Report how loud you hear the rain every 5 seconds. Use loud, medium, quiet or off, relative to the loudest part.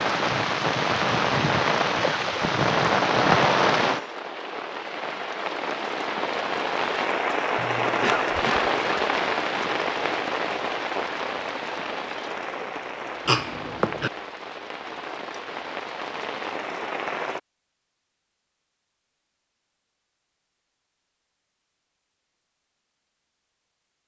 loud, loud, medium, medium, off.